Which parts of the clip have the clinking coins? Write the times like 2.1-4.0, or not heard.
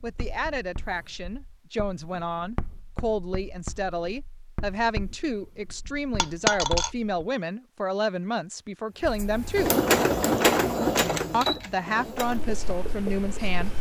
6.2-6.9.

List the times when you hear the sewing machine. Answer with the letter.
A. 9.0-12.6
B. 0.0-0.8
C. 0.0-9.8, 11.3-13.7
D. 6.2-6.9
A.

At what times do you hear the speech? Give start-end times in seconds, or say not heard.
0.0-9.8, 11.3-13.7.